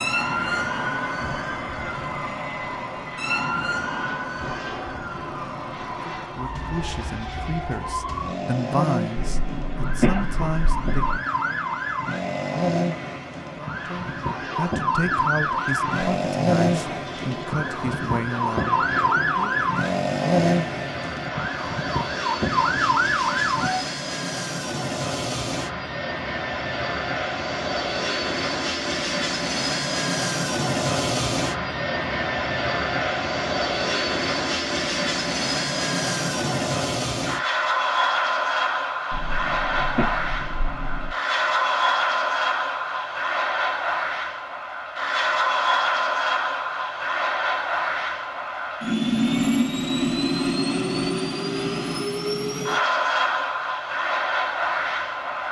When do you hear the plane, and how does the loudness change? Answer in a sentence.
The plane can be heard from 0.0 to 55.4 s, getting louder.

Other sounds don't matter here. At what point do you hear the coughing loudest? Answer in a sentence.
The volume of the coughing peaks at 10 seconds.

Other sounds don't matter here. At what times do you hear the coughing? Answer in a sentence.
The coughing can be heard from 9.2 to 11.2 s and from 39.1 to 41.1 s.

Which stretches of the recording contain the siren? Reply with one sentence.
You can hear the siren from 0.0 to 23.8 s.